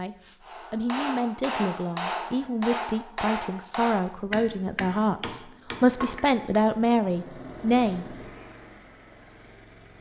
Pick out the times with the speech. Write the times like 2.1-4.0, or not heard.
0.0-8.1.